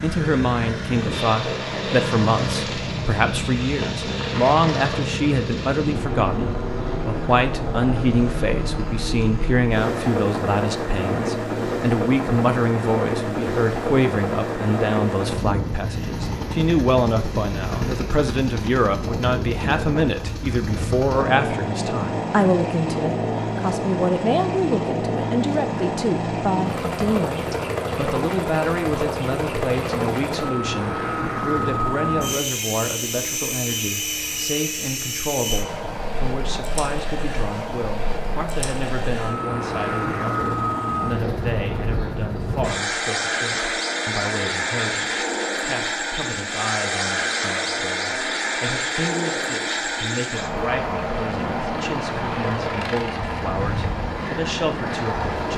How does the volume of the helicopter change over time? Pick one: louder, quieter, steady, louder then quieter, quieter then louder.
steady.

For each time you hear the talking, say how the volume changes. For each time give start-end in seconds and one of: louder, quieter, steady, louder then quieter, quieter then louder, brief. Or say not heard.
0.0-55.5 quieter.